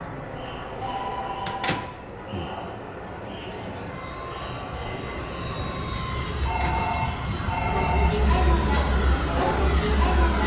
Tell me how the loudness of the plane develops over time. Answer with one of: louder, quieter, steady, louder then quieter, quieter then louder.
louder.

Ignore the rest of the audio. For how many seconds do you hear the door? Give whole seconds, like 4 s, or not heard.
2 s.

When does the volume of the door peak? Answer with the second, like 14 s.
2 s.